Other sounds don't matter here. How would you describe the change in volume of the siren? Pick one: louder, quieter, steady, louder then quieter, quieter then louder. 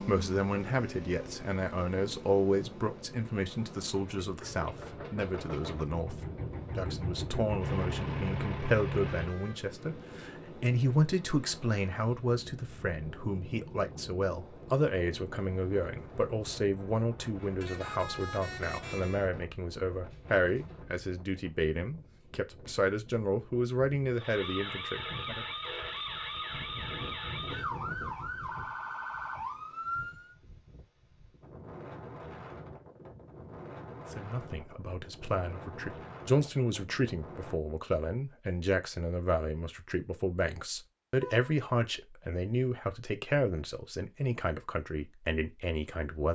steady.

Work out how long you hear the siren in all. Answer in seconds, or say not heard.
6 s.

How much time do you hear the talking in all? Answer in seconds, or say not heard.
38 s.